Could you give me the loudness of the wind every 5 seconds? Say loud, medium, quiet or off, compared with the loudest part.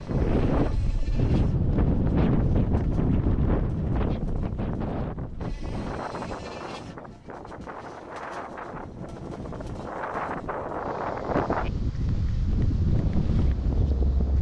loud, medium, loud.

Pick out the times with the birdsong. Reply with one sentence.
The birdsong can't be heard in this clip.